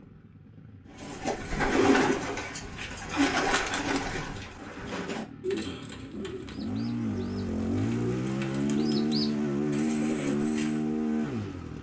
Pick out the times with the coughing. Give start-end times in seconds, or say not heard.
not heard.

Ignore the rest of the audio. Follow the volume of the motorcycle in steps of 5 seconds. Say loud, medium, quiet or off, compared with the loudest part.
quiet, loud, loud.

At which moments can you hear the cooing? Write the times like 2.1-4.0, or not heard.
0.9-10.8.